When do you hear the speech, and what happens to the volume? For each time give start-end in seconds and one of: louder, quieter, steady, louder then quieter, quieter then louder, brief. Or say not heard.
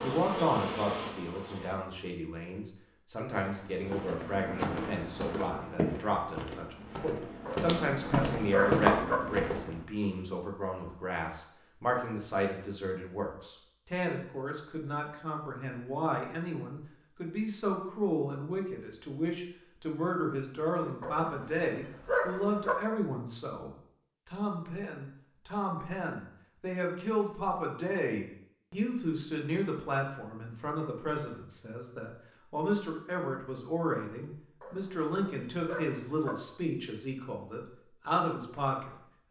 0.0-39.2 steady.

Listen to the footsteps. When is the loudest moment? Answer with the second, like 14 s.
9 s.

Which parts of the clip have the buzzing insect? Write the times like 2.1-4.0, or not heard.
0.0-1.8.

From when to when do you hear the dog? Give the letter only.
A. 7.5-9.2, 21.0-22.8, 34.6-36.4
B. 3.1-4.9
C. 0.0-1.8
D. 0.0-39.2
A.